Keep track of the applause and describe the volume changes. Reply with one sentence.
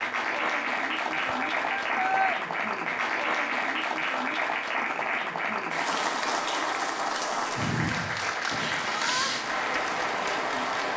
The loudness of the applause stays about the same.